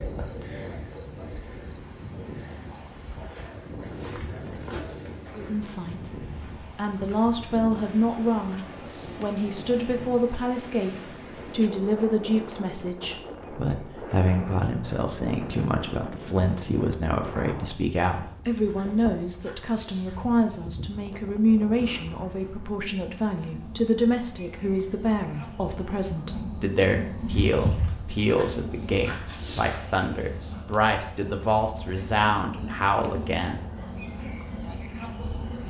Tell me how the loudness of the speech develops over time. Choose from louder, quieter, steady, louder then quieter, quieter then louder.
steady.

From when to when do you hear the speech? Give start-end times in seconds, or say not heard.
5.3-33.6.